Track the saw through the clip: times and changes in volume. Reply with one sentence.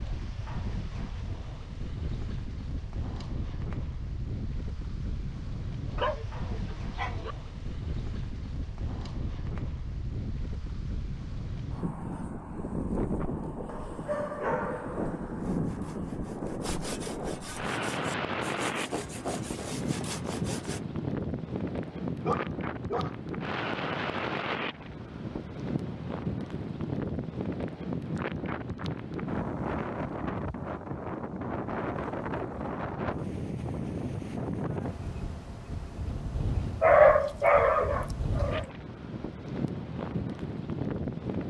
You can hear the saw from 15.3 to 20.8 s, getting louder.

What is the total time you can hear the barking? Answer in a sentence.
You can hear the barking for 6 seconds altogether.